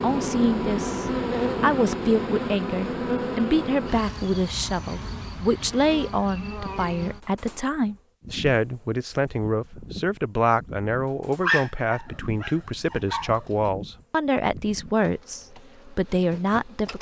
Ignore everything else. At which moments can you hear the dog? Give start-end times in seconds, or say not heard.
11.4-13.7.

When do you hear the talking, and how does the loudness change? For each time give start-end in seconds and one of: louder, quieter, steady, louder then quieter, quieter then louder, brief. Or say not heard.
0.0-16.9 steady.